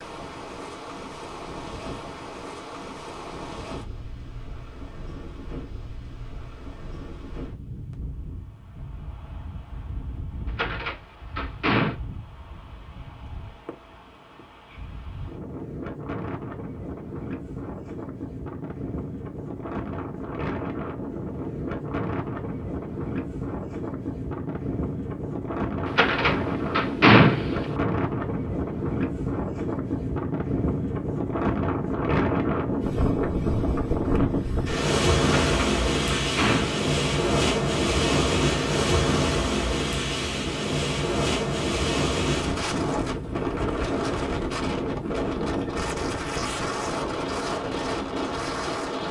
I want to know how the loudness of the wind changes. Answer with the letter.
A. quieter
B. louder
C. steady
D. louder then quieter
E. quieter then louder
B.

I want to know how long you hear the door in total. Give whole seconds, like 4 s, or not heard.
5 s.